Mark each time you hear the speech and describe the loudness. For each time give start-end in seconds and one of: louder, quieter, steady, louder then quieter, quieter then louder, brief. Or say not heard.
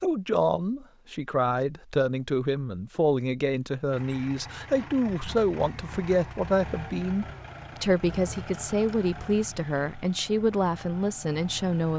0.0-11.9 steady.